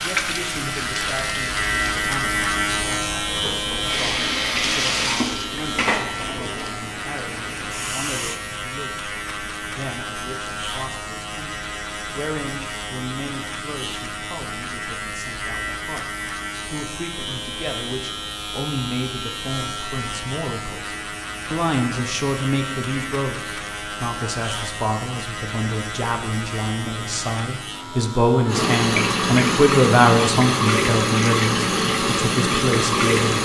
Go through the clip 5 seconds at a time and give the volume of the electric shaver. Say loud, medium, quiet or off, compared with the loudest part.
loud, medium, medium, medium, medium, medium, off.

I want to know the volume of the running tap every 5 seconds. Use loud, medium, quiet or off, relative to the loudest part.
medium, medium, off, off, off, loud, loud.